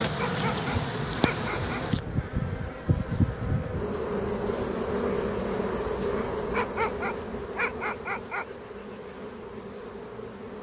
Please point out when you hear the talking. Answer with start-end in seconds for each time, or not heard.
not heard.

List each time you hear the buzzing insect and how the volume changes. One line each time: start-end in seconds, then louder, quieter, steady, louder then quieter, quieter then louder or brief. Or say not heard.
0.0-10.5 quieter.